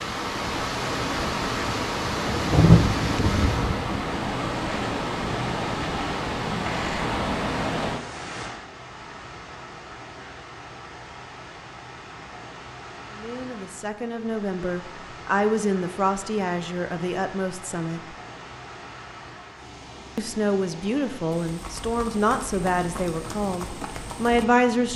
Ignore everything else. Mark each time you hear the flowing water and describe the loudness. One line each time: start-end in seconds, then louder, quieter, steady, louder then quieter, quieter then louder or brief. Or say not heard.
0.0-24.9 quieter.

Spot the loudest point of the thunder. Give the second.
3 s.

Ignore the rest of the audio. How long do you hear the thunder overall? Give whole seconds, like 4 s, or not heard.
3 s.